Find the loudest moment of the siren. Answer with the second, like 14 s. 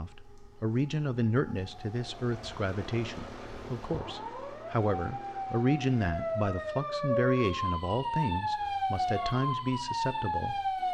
9 s.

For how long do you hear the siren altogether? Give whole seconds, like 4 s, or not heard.
11 s.